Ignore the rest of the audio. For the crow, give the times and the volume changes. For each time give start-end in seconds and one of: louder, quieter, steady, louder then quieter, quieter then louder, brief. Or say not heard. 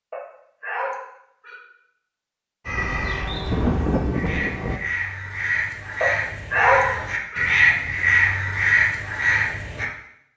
2.6-9.8 louder.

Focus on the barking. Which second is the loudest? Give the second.
7 s.